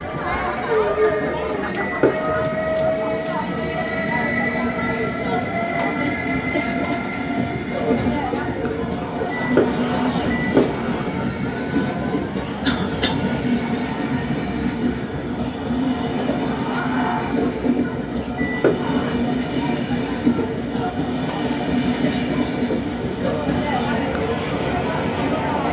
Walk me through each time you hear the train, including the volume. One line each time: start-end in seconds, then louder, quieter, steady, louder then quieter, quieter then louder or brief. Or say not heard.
0.0-25.6 steady.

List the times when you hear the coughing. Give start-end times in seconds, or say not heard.
12.6-13.2.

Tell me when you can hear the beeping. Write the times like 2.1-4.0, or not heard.
1.8-2.4, 9.3-11.2, 18.4-19.1.